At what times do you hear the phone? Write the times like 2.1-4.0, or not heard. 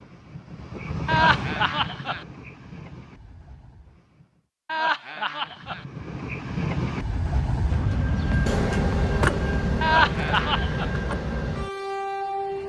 not heard.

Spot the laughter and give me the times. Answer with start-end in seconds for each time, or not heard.
1.1-2.2, 4.7-5.8, 9.8-10.9.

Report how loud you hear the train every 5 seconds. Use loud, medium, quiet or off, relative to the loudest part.
medium, loud, loud.